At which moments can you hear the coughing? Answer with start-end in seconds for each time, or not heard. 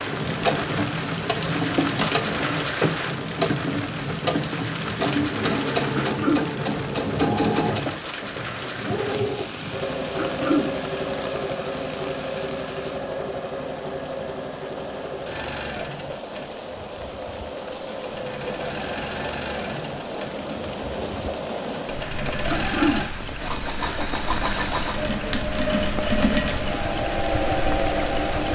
6.0-6.5, 10.2-10.7, 22.5-23.0.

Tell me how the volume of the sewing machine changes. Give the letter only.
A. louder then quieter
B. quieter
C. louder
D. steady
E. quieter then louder
E.